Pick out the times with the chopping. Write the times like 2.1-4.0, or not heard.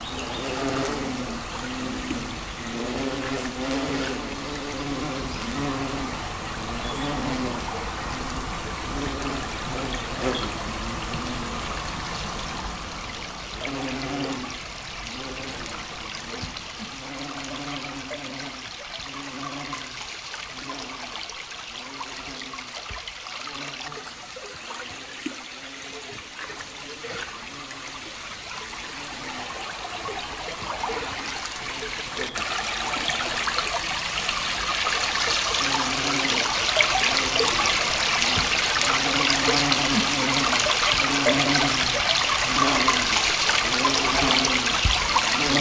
not heard.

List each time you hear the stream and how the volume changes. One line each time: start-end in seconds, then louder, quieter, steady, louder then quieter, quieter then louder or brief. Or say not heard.
0.0-45.5 louder.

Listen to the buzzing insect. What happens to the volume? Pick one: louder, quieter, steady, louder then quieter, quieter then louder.
quieter then louder.